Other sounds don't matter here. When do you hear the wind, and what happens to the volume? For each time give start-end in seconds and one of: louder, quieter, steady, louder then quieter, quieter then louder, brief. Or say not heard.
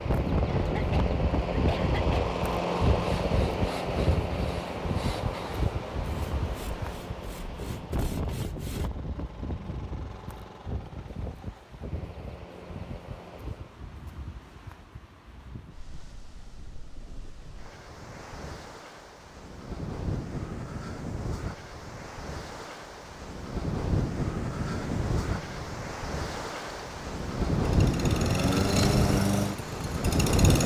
0.0-30.6 quieter then louder.